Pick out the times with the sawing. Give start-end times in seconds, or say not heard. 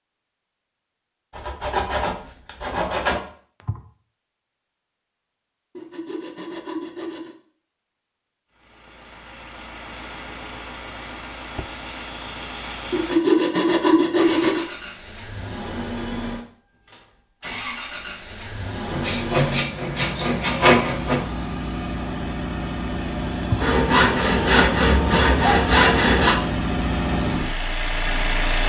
1.4-3.2, 5.8-7.3, 12.9-14.7, 18.9-21.2, 23.6-26.4.